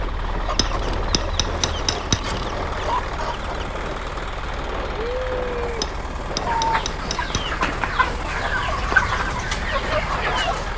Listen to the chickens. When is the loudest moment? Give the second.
9 s.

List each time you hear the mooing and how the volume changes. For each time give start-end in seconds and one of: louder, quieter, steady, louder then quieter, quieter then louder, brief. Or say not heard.
not heard.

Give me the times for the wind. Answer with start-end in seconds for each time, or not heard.
0.0-10.7.